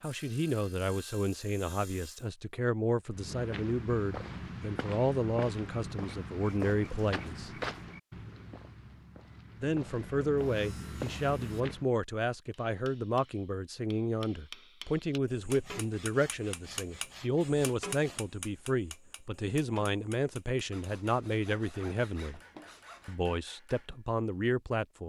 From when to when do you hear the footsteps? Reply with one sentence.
You can hear the footsteps from 3.1 to 11.9 s.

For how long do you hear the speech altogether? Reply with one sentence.
You can hear the speech for 22 seconds altogether.